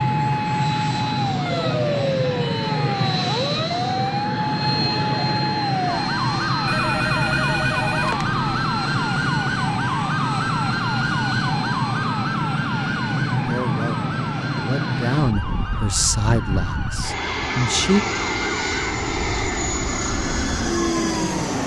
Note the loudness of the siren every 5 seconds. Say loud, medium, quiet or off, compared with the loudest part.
loud, loud, loud, medium, loud.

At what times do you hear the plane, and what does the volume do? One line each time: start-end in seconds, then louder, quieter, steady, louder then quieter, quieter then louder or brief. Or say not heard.
0.0-21.6 steady.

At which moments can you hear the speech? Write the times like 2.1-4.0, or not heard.
13.4-18.0.